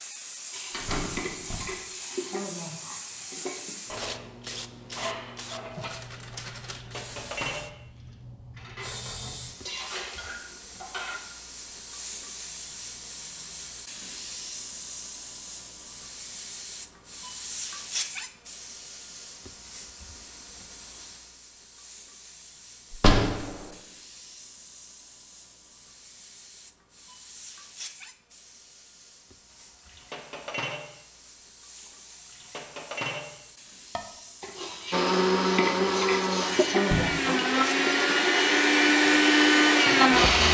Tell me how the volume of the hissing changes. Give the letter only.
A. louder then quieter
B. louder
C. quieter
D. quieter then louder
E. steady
C.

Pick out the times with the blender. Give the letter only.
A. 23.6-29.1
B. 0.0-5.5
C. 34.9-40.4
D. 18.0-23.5
C.